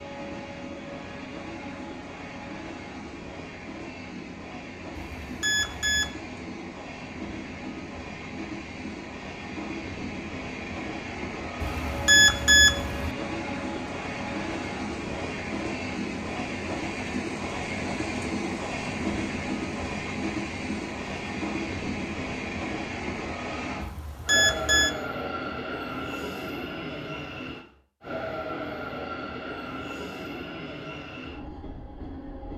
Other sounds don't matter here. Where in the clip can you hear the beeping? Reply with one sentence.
The beeping can be heard from 5.2 to 6.1 s, from 11.6 to 13.1 s and from 23.8 to 24.9 s.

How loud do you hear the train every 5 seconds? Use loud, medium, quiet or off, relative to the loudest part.
medium, medium, loud, loud, loud, loud, medium.